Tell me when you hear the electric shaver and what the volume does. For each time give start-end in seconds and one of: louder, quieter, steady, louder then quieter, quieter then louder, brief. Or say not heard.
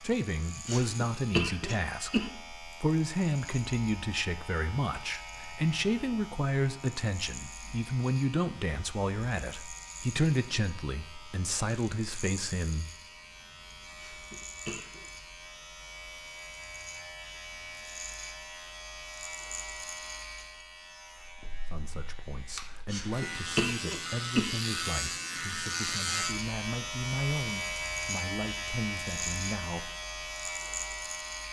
0.0-31.4 louder.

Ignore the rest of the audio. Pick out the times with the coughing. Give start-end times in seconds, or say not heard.
0.7-2.3, 13.9-15.1, 22.9-24.5.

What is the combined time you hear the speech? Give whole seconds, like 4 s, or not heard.
21 s.